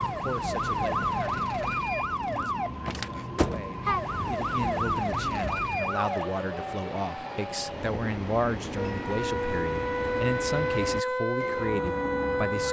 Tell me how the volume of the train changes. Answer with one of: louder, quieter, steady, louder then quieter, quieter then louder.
steady.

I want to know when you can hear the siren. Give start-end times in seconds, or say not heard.
0.0-6.3, 8.8-12.6.